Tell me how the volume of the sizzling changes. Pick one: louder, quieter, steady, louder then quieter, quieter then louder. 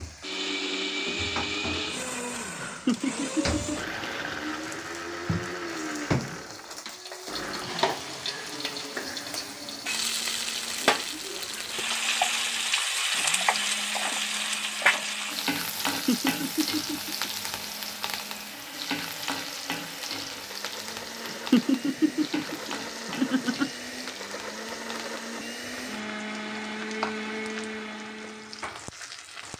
louder then quieter.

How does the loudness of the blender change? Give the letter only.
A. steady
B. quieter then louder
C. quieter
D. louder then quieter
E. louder
B.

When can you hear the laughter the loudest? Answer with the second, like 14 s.
22 s.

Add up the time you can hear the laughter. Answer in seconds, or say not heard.
5 s.